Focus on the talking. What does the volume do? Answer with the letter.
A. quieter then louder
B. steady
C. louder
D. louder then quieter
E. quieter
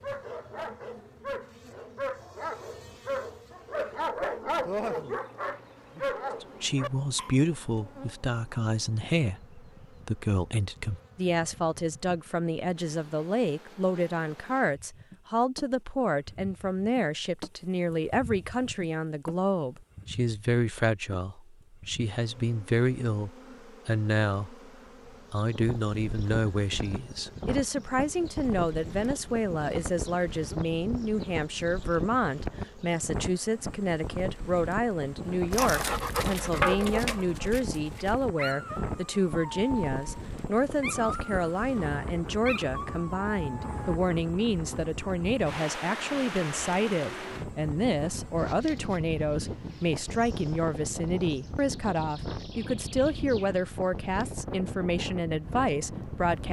B.